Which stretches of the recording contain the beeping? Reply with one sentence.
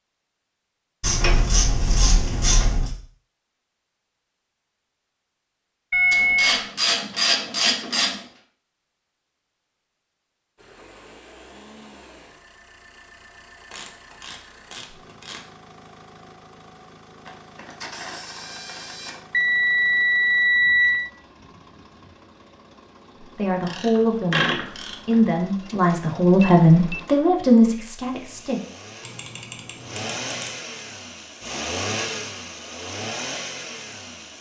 The beeping can be heard from 5.9 to 6.7 s, from 19.3 to 21.1 s and from 26.4 to 27.1 s.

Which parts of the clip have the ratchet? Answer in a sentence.
You can hear the ratchet from 1.0 to 2.9 s, from 6.1 to 8.2 s, from 13.7 to 15.4 s, from 17.2 to 19.2 s, from 23.6 to 25.2 s and from 29.0 to 30.5 s.